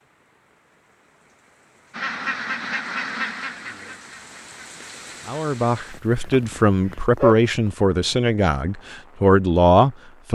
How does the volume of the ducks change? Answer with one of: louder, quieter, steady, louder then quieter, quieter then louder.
quieter.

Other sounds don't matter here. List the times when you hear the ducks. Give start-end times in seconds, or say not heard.
1.9-7.0.